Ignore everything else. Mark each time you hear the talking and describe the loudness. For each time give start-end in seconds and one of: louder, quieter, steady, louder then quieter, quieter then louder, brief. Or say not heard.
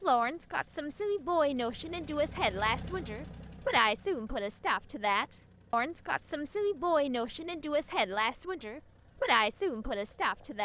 0.0-10.6 steady.